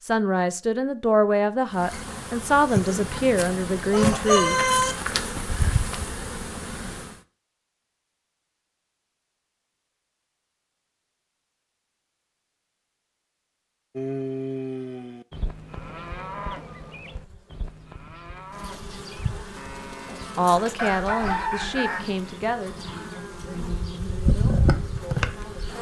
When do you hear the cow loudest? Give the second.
14 s.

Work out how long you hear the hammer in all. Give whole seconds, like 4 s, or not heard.
not heard.